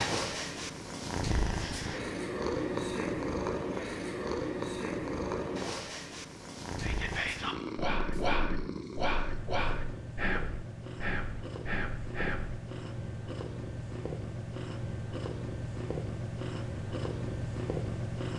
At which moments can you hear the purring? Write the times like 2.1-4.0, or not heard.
0.0-18.3.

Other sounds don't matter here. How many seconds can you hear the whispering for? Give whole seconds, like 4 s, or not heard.
6 s.